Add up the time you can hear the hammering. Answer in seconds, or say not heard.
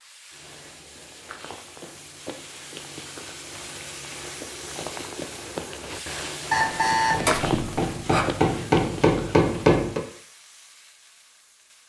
3 s.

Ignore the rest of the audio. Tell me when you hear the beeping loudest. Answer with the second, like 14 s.
7 s.